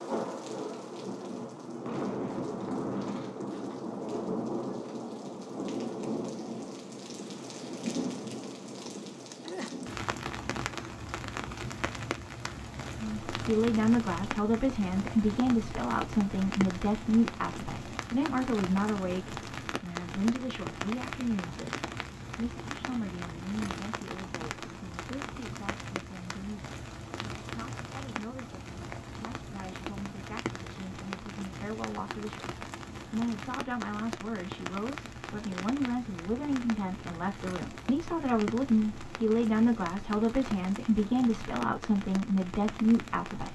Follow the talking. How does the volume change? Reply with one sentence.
The loudness of the talking goes down, then up.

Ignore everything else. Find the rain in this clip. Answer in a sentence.
You can hear the rain from 0.0 to 43.5 s.